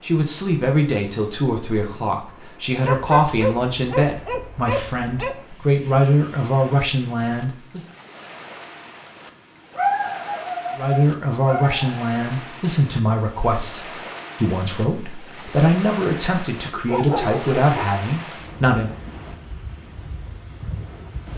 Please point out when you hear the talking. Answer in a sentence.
The talking can be heard from 0.0 to 7.8 s and from 10.8 to 18.9 s.